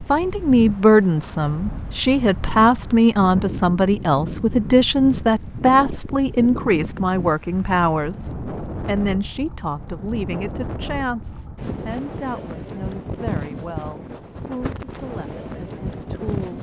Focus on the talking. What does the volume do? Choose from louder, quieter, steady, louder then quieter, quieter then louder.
quieter.